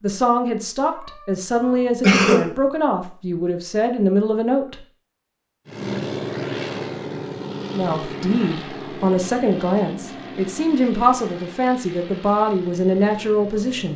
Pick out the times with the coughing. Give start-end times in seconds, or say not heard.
1.6-2.5.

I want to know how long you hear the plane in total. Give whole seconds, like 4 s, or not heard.
8 s.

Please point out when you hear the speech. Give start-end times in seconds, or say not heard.
0.0-4.8, 7.8-13.9.